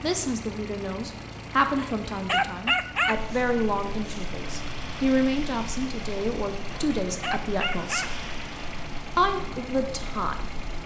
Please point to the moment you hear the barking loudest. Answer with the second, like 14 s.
3 s.